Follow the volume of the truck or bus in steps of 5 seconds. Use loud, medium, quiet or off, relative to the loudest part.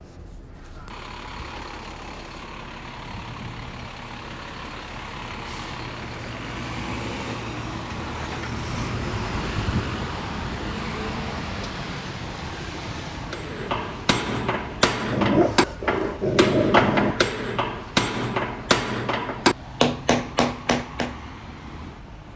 medium, loud, loud, medium, medium.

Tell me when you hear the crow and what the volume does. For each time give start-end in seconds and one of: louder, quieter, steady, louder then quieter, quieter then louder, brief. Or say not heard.
not heard.